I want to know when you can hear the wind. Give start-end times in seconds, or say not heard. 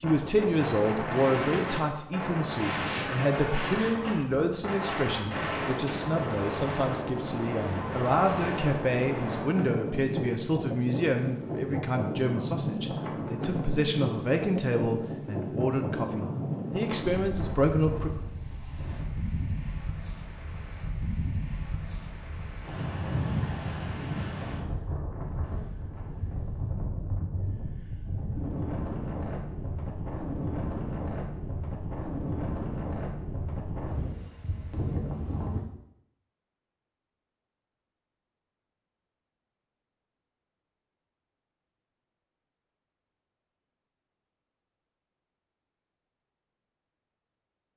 0.0-35.6.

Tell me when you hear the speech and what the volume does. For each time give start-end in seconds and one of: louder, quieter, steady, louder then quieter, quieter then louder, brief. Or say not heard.
0.0-18.1 steady.